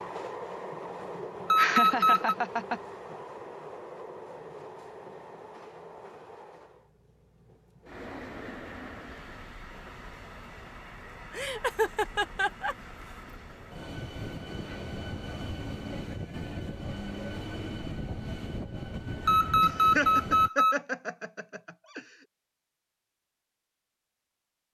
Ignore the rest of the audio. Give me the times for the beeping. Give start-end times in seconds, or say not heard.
1.5-2.4, 19.2-20.8.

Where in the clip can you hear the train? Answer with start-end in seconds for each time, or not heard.
0.0-20.5.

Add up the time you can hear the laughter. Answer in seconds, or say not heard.
5 s.